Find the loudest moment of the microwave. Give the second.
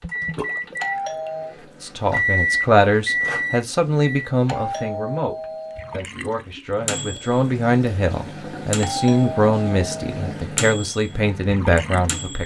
3 s.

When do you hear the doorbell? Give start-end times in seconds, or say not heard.
0.8-1.6, 4.5-6.0, 8.8-10.1.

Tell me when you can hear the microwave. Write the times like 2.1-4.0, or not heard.
0.0-4.3, 6.8-12.4.